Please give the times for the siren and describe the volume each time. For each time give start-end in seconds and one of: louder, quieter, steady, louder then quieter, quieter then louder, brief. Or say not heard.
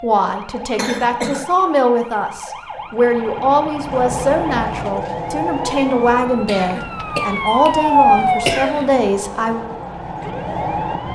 0.0-11.1 louder then quieter.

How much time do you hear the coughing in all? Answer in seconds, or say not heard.
3 s.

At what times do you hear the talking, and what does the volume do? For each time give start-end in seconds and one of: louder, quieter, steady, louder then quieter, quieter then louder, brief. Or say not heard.
0.0-9.7 steady.